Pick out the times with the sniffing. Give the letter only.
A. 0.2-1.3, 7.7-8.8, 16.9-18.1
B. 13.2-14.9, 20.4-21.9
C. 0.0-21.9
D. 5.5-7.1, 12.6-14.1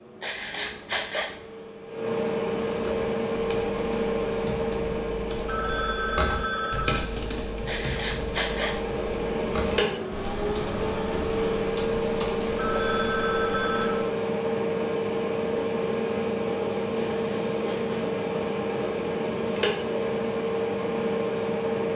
A.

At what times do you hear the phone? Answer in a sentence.
The phone can be heard from 5.5 to 7.1 s and from 12.6 to 14.1 s.